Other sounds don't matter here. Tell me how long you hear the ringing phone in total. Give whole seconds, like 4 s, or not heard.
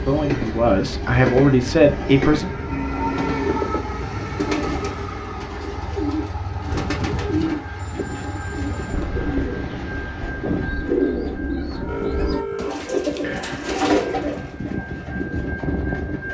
3 s.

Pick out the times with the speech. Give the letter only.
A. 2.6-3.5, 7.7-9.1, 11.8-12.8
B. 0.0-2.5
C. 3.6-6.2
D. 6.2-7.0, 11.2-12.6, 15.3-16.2
B.